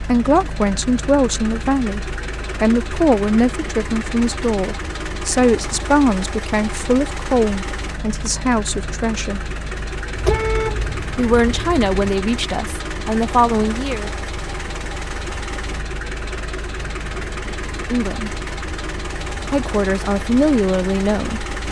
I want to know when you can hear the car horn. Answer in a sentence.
The car horn can be heard from 10.2 to 12.1 s.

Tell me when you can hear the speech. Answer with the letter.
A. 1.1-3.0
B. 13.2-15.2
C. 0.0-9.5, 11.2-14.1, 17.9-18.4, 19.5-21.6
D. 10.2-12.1
C.